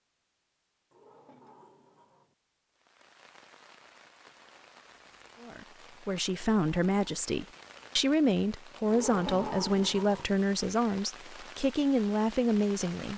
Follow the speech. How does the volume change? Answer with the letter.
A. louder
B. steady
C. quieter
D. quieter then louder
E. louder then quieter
B.